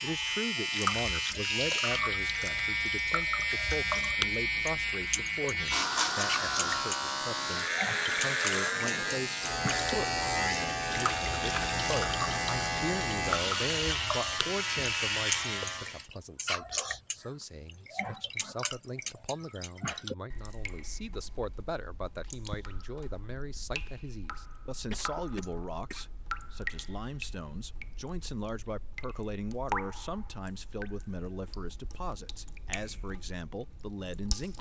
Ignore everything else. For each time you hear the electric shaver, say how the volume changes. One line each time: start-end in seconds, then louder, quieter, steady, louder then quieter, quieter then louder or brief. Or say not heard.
0.0-16.1 steady.